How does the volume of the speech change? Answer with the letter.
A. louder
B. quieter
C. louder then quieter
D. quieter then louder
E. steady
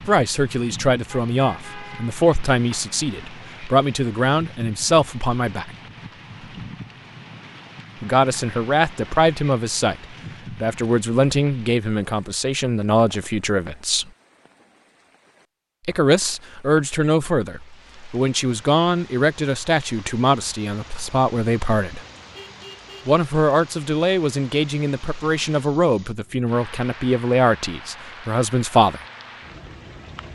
E.